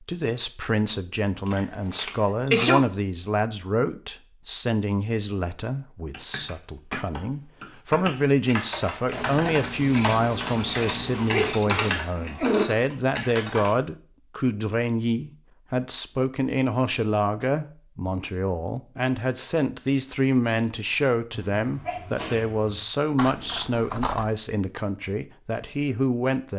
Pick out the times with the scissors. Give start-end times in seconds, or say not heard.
1.4-2.2, 9.1-11.7, 23.1-24.3.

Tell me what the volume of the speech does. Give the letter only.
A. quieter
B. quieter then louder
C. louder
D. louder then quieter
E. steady
E.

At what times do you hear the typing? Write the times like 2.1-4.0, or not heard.
6.1-13.8.